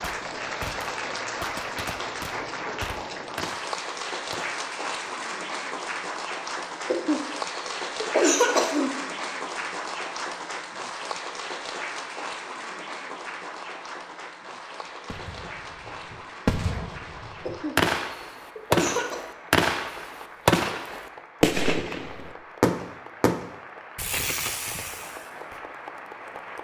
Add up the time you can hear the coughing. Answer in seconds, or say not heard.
4 s.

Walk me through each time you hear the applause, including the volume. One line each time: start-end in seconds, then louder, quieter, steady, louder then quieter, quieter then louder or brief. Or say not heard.
0.0-26.5 quieter.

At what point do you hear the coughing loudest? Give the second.
8 s.